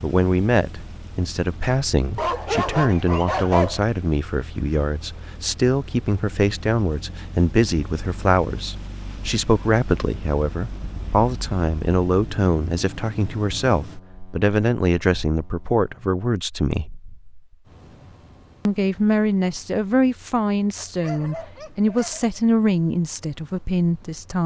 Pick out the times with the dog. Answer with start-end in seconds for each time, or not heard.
2.1-3.8, 21.0-22.2.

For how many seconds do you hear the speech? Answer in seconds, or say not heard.
23 s.